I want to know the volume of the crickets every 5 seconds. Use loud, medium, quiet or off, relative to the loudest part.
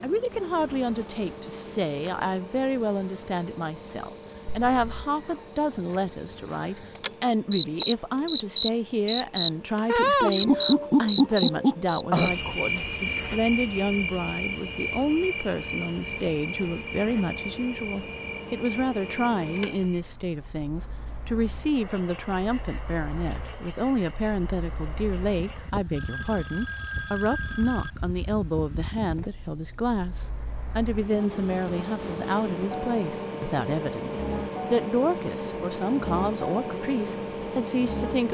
quiet, loud, loud, quiet, quiet, quiet, quiet, quiet.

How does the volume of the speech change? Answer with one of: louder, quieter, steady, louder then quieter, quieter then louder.
steady.